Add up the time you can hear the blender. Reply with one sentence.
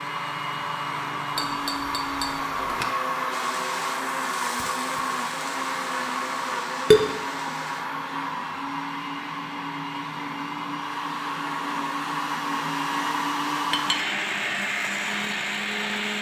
The blender can be heard for 16 seconds in total.